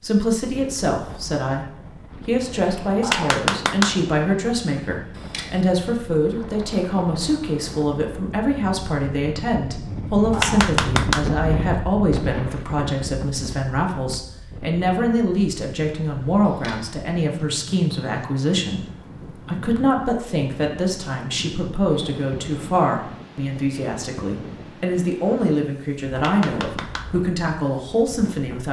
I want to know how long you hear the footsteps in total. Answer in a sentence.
The footsteps can't be heard in this clip.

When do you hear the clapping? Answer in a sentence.
You can hear the clapping from 3.0 to 4.0 s, from 10.3 to 11.3 s and from 26.1 to 27.1 s.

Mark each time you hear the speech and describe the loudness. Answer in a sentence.
You can hear the speech briefly from 0.0 to 1.6 s; and from 2.2 to 28.6 s, at a steady volume.